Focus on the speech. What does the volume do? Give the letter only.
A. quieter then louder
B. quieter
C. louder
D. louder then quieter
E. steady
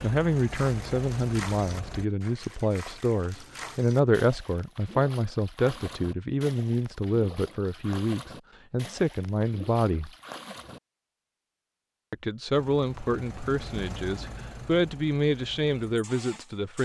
E.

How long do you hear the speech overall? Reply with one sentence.
The speech can be heard for 15 seconds in total.